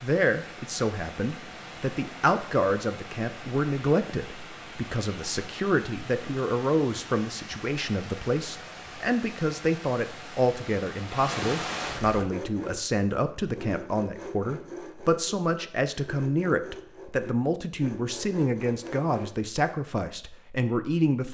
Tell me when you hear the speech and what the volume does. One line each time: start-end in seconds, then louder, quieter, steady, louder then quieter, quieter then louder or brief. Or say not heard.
0.0-21.2 steady.